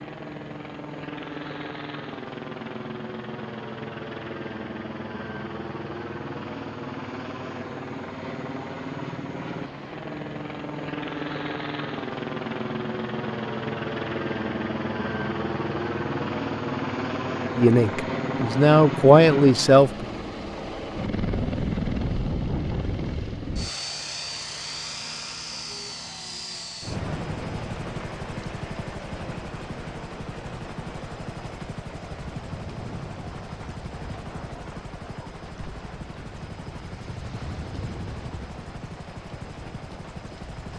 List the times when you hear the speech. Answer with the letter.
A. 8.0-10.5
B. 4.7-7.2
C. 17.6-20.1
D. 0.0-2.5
C.